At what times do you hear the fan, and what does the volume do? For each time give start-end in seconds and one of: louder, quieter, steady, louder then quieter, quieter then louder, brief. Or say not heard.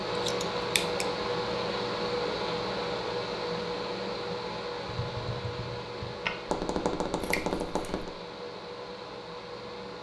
0.0-9.9 quieter.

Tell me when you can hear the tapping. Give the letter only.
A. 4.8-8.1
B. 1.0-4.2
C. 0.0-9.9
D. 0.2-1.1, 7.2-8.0
A.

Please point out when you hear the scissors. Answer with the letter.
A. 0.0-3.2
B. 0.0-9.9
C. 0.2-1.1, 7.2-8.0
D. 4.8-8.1
C.